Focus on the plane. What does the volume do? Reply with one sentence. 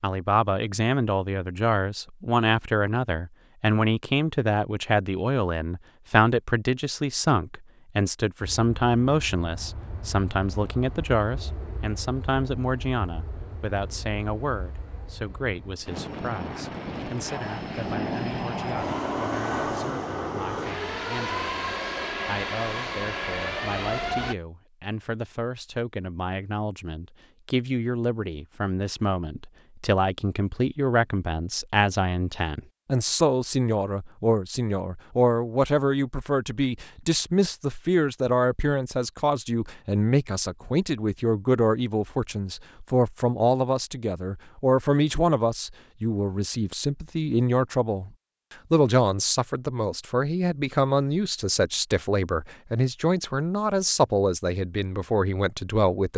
The loudness of the plane goes up.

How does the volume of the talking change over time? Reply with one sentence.
The volume of the talking goes down, then up.